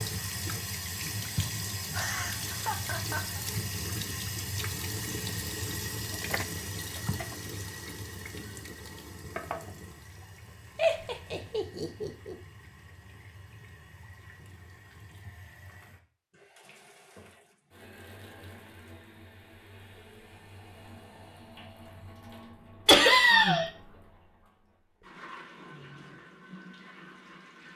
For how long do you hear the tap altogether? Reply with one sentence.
The tap can be heard for 28 seconds in total.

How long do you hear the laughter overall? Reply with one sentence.
You can hear the laughter for 4 seconds altogether.